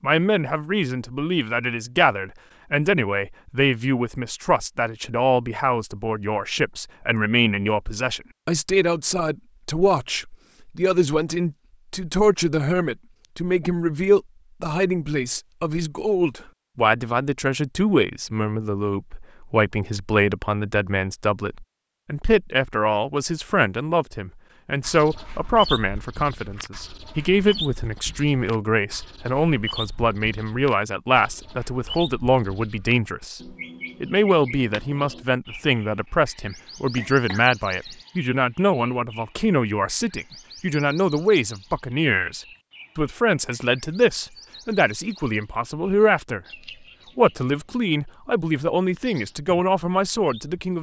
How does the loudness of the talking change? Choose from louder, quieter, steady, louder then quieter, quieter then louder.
steady.